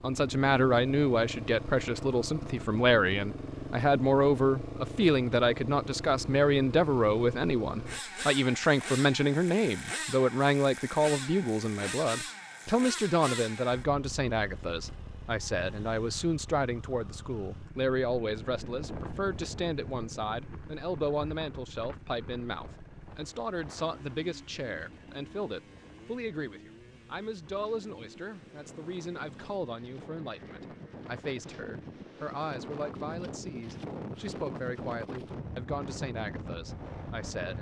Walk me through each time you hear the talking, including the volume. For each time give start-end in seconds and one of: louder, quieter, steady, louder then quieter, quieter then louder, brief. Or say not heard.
0.0-37.5 quieter.